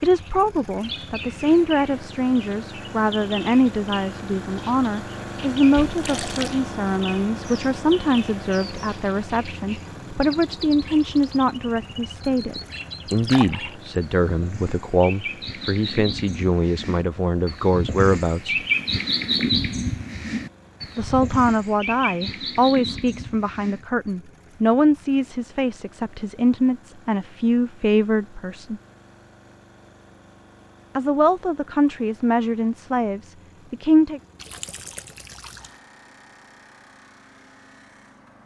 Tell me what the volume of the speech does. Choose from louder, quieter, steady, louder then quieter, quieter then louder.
steady.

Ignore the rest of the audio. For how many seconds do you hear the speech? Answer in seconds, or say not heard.
30 s.